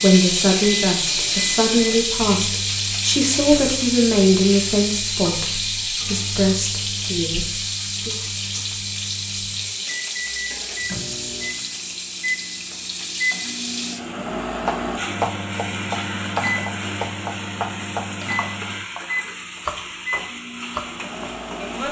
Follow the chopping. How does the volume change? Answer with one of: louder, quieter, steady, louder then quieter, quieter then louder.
quieter then louder.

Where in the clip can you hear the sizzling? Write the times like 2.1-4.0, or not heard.
0.0-21.8.